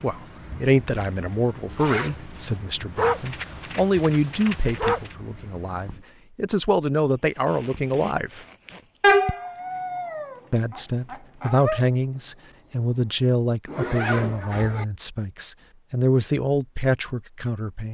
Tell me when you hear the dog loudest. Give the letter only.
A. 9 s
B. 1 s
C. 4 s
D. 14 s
A.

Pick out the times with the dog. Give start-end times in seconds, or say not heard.
3.0-5.1, 9.0-11.8.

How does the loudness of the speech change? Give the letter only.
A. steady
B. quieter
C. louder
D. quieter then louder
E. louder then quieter
A.